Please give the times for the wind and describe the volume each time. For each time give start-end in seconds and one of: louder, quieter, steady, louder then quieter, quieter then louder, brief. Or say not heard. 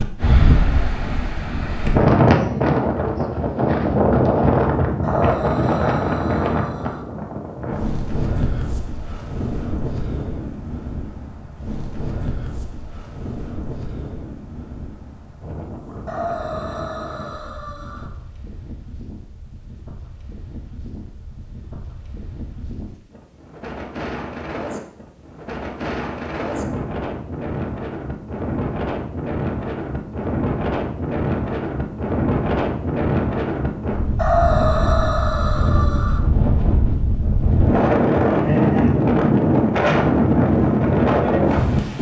0.0-41.9 quieter then louder.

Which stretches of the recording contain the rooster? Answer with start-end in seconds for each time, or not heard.
5.0-7.0, 16.1-18.1, 34.1-36.2.